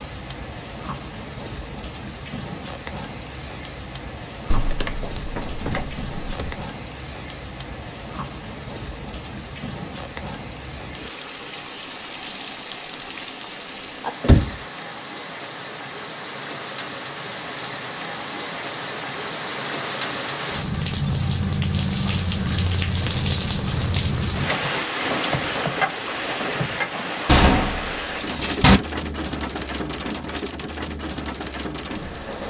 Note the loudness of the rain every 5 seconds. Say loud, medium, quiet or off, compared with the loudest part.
medium, medium, medium, medium, loud, loud, medium.